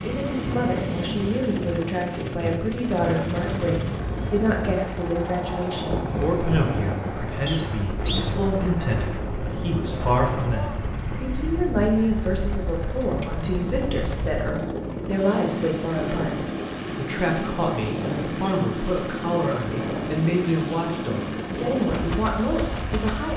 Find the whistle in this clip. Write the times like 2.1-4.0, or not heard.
7.5-8.2.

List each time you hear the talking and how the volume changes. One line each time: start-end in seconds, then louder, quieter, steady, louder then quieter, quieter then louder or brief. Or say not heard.
0.0-23.3 steady.